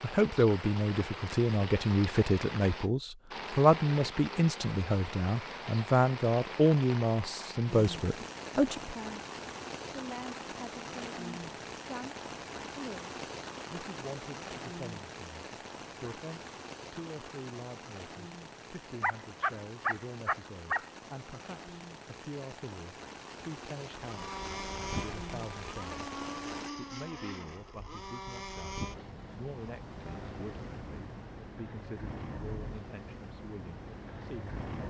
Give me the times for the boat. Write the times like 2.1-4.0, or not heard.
23.9-34.8.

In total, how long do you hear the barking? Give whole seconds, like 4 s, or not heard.
2 s.